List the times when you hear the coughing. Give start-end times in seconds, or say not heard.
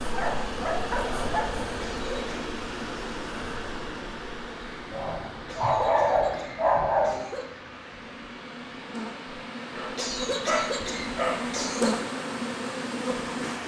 1.8-2.4, 5.5-7.5, 9.9-11.9.